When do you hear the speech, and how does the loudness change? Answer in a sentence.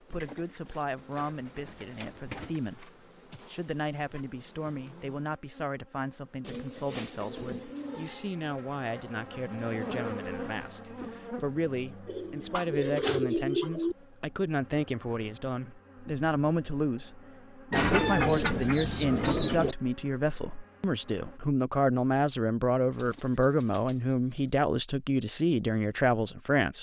The speech can be heard from 0.0 to 26.7 s, getting louder.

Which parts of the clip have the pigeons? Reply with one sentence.
The pigeons can be heard from 0.1 to 2.6 s, from 6.4 to 8.3 s, from 12.1 to 13.9 s, from 17.7 to 19.8 s and from 22.9 to 24.4 s.